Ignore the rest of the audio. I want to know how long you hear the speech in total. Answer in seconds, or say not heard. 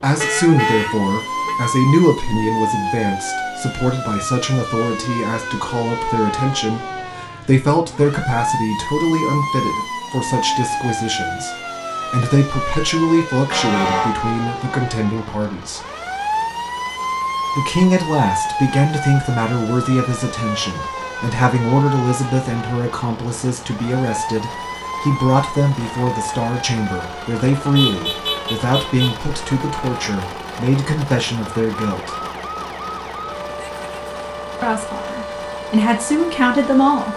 33 s.